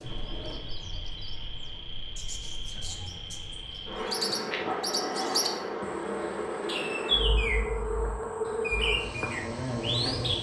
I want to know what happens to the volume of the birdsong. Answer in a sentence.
The volume of the birdsong goes up.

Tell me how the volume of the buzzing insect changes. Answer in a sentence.
The loudness of the buzzing insect goes up.